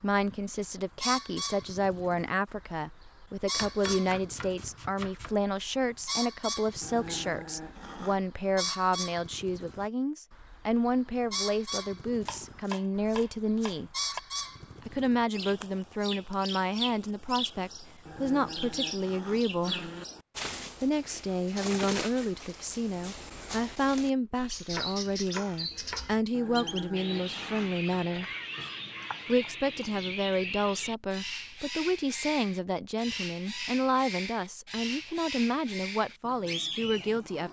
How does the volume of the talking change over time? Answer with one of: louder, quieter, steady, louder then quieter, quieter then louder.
steady.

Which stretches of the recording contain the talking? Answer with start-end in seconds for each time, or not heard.
0.0-13.9, 14.8-19.9, 20.8-28.2, 29.2-37.4.